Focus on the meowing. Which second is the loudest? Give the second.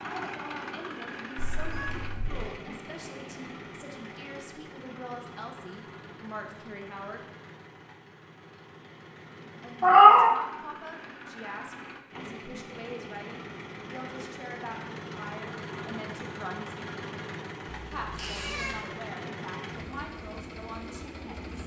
10 s.